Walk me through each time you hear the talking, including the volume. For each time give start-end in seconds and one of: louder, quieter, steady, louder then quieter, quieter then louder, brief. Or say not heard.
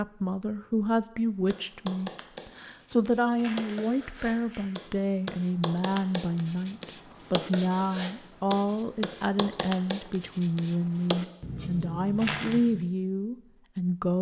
0.0-14.1 steady.